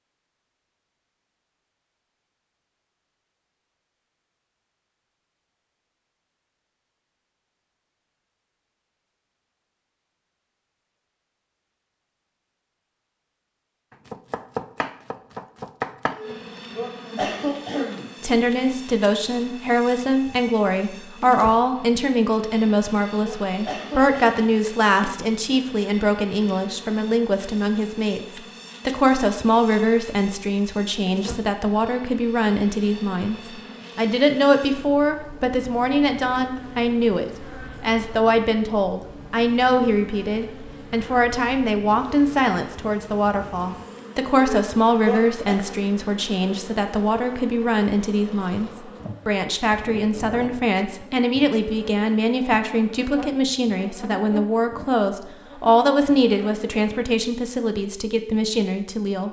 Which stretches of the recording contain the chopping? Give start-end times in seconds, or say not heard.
13.9-16.4.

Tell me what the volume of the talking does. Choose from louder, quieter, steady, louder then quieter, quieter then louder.
steady.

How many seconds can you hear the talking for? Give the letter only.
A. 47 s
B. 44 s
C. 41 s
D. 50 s
C.